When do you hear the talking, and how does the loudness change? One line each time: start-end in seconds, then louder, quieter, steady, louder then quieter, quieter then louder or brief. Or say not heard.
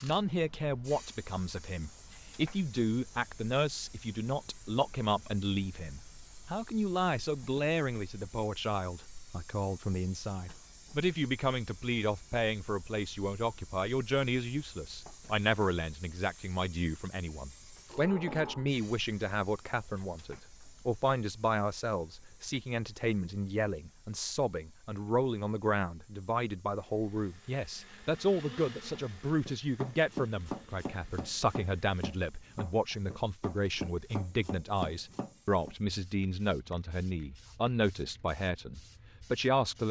0.0-39.8 steady.